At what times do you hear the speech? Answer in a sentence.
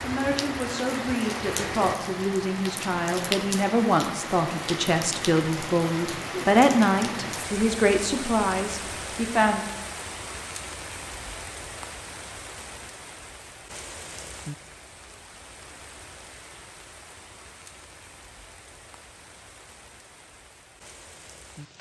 You can hear the speech from 0.0 to 9.7 s.